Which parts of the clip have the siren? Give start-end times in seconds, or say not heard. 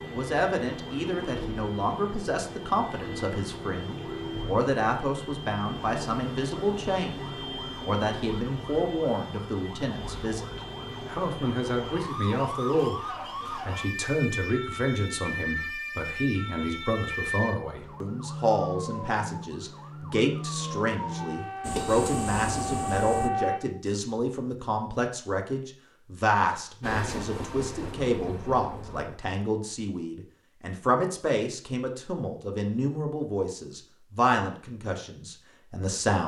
0.0-23.6.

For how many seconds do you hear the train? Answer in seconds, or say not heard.
4 s.